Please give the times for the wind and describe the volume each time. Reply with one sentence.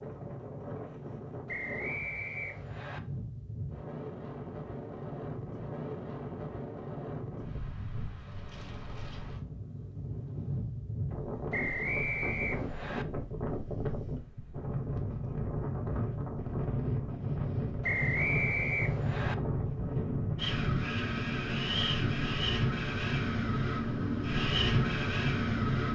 The wind can be heard from 0.0 to 25.9 s, getting louder.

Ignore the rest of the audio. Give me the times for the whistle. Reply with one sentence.
The whistle can be heard from 1.4 to 3.0 s, from 11.5 to 13.1 s and from 17.8 to 19.4 s.